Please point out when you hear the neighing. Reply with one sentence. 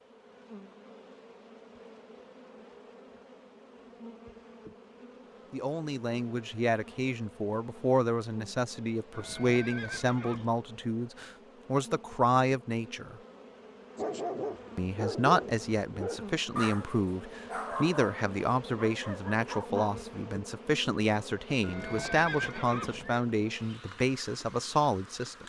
The neighing can be heard from 9.1 to 10.6 s and from 21.6 to 23.2 s.